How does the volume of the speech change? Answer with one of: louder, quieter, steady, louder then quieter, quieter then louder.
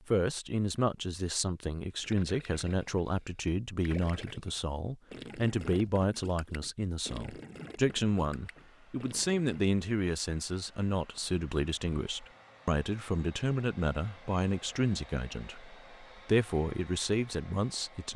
steady.